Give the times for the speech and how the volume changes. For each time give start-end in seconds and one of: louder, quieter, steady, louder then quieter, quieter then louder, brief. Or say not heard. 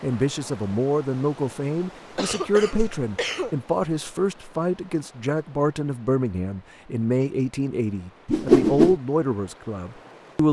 0.0-10.4 steady.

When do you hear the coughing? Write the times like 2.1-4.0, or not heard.
2.1-3.6.